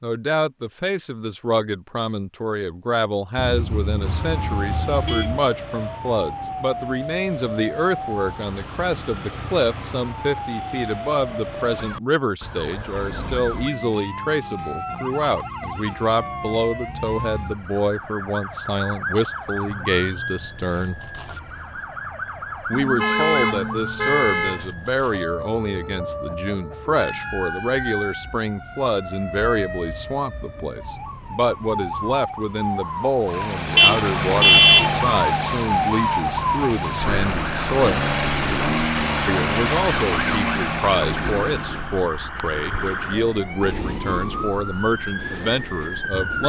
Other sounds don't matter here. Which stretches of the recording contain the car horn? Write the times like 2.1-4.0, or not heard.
3.4-5.4, 22.7-24.6, 33.8-35.0.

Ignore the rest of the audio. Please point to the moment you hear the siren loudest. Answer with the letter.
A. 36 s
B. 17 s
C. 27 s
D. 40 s
A.